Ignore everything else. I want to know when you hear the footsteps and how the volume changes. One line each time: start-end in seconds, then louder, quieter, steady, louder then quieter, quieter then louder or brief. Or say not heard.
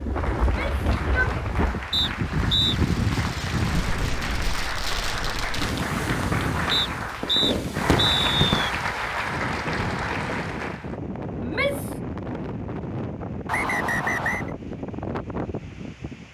not heard.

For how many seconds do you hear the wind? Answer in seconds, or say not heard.
16 s.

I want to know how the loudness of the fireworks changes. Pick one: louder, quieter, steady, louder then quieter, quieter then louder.
louder.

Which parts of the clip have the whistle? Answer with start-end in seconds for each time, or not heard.
1.9-2.8, 6.7-8.7, 13.4-14.5.